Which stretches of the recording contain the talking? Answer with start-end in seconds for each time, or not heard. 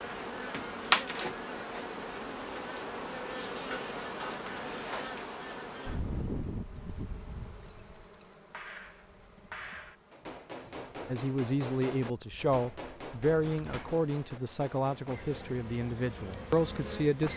11.1-17.3.